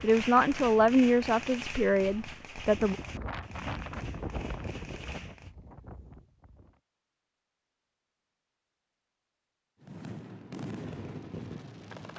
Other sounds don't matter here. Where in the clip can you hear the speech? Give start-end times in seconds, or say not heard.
0.0-3.0.